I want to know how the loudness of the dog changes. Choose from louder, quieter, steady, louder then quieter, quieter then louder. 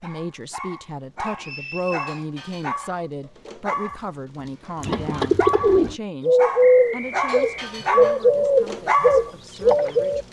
louder.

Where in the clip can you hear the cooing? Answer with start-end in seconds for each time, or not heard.
4.8-10.2.